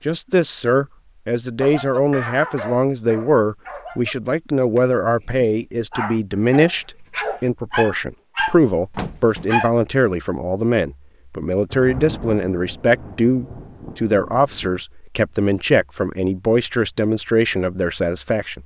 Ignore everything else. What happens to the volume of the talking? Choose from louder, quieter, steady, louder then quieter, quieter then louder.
steady.